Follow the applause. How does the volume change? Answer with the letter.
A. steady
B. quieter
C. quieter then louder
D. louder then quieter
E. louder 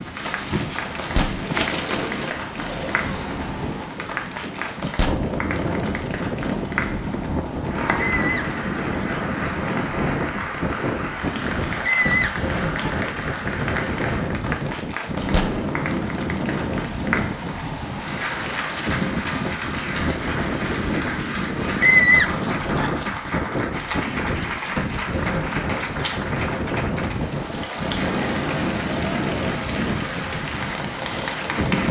A.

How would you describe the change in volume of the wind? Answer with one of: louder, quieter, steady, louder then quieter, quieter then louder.
steady.